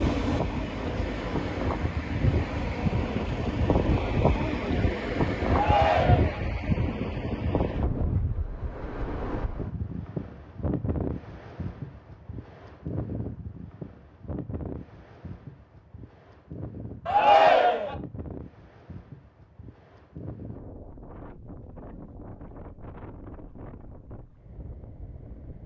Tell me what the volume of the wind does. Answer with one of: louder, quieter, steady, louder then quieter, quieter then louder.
quieter.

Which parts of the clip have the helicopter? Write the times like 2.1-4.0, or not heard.
0.0-6.0.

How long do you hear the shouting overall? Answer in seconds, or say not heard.
2 s.